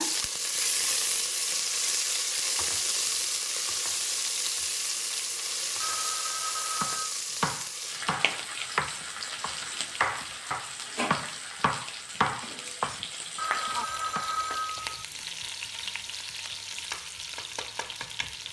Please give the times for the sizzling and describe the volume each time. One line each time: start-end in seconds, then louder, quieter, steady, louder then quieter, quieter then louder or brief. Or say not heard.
0.0-18.4 quieter.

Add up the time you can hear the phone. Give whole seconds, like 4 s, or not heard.
3 s.